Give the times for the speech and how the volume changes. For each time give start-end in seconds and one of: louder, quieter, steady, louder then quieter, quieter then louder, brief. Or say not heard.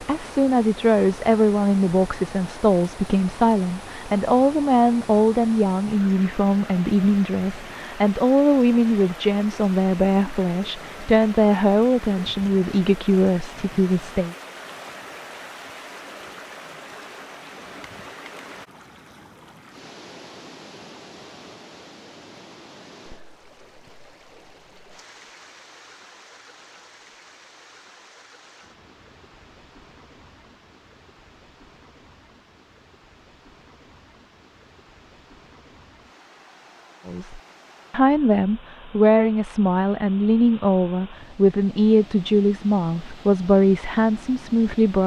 0.0-14.3 steady
37.0-45.0 steady.